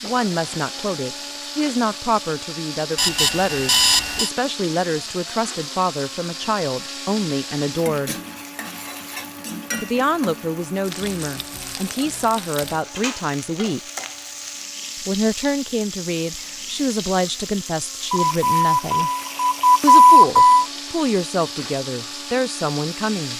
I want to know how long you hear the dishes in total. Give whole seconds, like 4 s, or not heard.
not heard.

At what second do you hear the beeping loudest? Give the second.
20 s.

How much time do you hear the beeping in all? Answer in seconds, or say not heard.
4 s.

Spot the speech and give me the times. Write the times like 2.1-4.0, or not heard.
0.0-8.2, 9.8-13.8, 15.0-19.1, 19.8-23.3.